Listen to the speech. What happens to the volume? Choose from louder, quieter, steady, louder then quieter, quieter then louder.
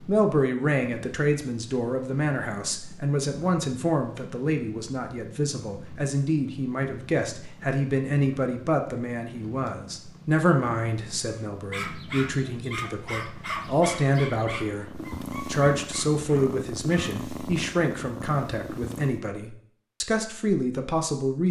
steady.